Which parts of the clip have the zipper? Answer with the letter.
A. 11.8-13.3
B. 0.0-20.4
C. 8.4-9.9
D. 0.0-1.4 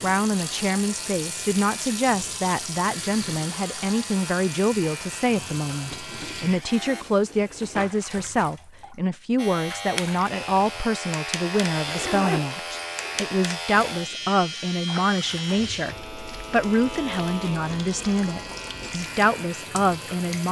A.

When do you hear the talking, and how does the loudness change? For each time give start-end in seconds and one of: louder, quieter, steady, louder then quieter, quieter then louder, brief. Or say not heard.
0.0-20.4 steady.